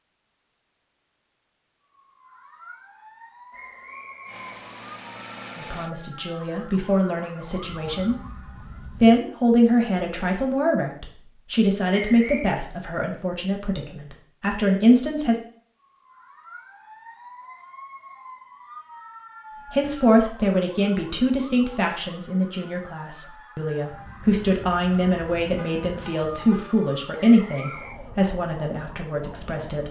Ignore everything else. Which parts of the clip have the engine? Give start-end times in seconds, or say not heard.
4.2-6.0.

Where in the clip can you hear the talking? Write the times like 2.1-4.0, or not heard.
5.5-8.2, 9.0-15.3, 19.6-29.8.